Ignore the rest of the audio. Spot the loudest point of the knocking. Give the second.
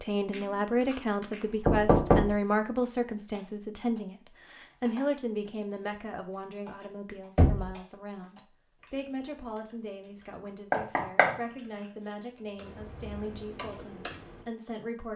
2 s.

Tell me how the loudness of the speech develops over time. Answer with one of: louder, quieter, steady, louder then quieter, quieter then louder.
quieter.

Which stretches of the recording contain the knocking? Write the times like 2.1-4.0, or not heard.
0.3-0.9, 1.6-2.4, 7.3-7.8, 10.7-11.3.